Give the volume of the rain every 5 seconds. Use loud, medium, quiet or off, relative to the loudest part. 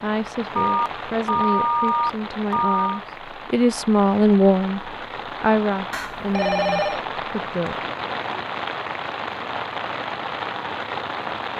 medium, loud, loud.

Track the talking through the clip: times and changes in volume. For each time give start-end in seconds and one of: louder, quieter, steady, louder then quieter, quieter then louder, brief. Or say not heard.
0.0-7.9 louder then quieter.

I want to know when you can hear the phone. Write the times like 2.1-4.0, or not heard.
0.6-3.0, 5.9-7.0.